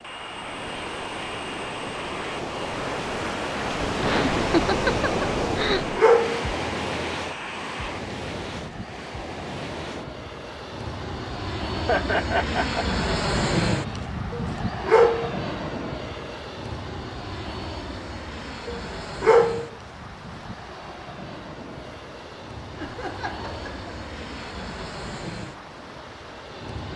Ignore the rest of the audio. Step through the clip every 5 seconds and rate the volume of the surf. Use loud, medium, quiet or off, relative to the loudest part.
loud, loud, quiet, quiet, quiet, quiet.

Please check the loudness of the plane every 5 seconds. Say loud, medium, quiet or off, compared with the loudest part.
medium, medium, loud, medium, medium, medium.